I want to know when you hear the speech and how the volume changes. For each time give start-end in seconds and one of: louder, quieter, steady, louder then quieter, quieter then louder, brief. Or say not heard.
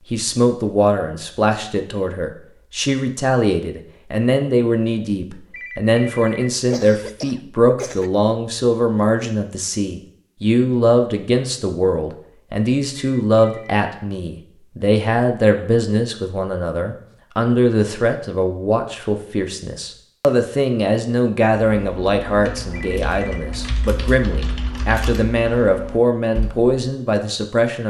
0.1-27.8 steady.